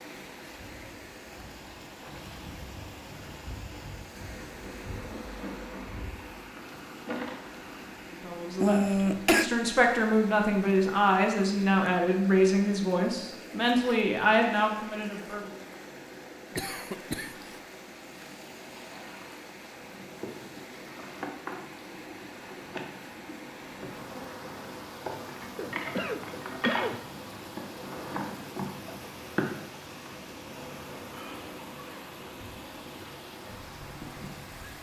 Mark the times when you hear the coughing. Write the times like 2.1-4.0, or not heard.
8.6-9.5, 16.6-17.6, 25.6-27.1.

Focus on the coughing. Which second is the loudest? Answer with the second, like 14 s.
9 s.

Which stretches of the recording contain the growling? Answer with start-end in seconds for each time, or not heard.
not heard.